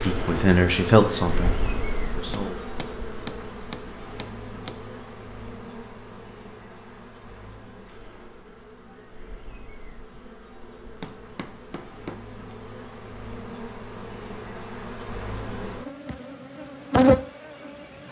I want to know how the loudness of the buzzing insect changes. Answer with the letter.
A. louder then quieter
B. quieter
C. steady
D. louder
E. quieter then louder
E.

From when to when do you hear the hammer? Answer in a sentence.
The hammer can be heard from 2.3 to 4.8 s and from 10.6 to 12.2 s.